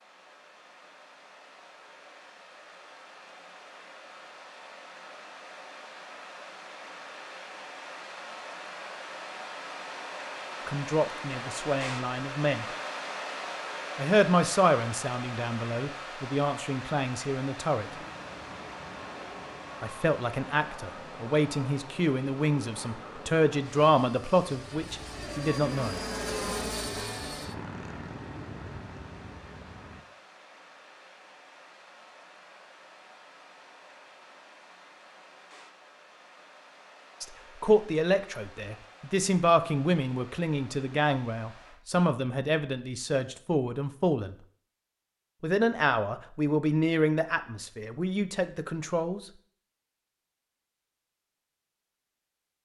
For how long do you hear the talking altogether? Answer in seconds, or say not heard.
23 s.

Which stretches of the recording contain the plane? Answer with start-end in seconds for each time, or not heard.
17.8-30.1.